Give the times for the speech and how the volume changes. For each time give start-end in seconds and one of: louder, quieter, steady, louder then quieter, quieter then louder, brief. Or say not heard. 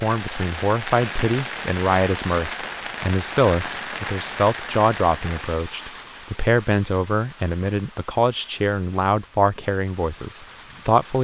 0.0-11.1 steady.